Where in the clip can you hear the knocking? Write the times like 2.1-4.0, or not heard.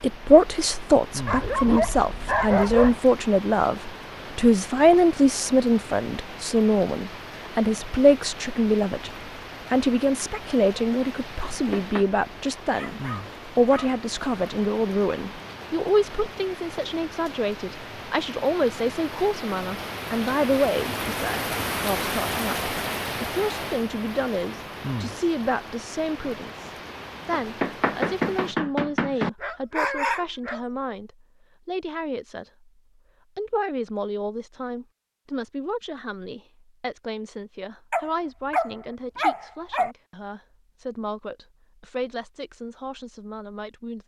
11.5-12.1, 27.3-29.3.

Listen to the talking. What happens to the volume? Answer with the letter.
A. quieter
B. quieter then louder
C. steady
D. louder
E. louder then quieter
A.